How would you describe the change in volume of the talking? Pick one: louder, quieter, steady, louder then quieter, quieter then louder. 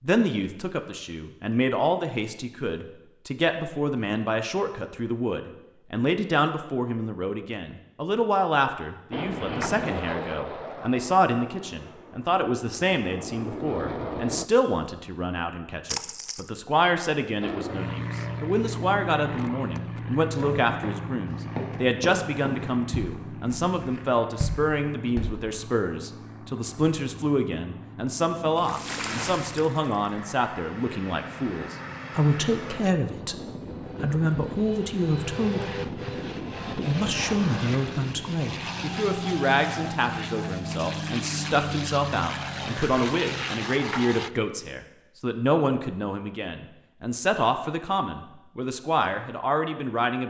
steady.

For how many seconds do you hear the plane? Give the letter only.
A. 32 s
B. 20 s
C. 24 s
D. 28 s
A.